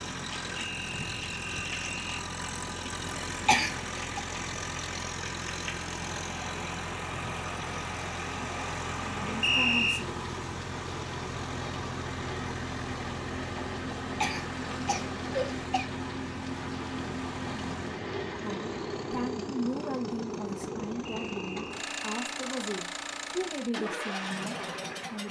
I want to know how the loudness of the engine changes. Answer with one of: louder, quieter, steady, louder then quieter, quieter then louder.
steady.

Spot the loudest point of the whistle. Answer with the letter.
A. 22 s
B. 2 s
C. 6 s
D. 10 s
D.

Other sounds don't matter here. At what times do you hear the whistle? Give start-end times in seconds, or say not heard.
0.6-2.2, 9.4-10.1, 21.1-22.2.